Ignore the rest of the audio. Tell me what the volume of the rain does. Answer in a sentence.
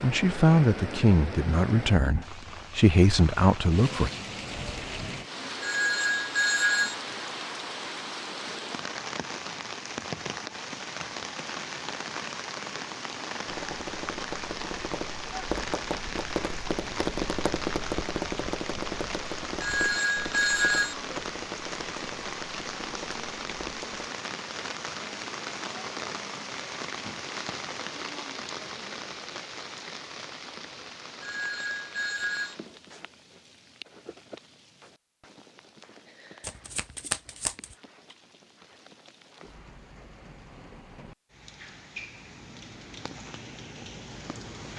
The loudness of the rain goes down.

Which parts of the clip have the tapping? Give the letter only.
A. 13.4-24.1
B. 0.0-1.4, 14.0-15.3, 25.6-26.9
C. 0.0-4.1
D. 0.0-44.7
A.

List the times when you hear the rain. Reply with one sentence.
You can hear the rain from 0.0 to 44.7 s.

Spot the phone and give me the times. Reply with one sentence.
The phone can be heard from 5.6 to 7.0 s, from 19.6 to 20.9 s and from 31.2 to 32.5 s.